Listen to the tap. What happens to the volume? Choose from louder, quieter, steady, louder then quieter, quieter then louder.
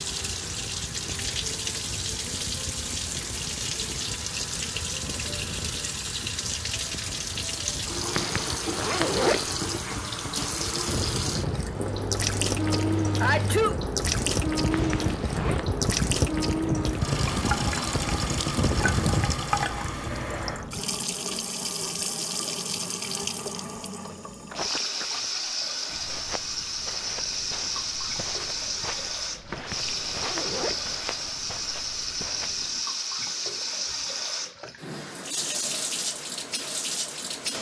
steady.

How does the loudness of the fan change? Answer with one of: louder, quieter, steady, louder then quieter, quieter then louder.
louder.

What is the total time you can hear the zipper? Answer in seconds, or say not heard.
4 s.